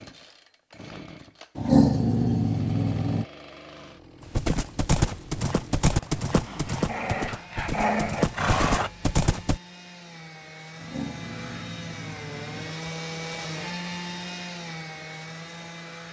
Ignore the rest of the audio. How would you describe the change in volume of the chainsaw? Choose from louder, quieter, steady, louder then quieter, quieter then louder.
louder.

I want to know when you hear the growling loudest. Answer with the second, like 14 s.
2 s.